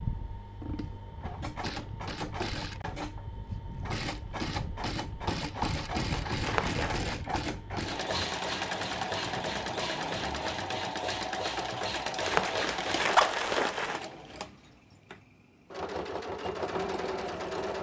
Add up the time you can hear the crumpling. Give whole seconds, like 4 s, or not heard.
2 s.